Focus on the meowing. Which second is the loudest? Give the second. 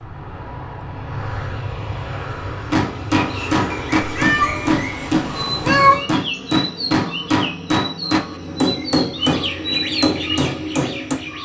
6 s.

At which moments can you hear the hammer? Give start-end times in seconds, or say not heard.
2.7-11.2.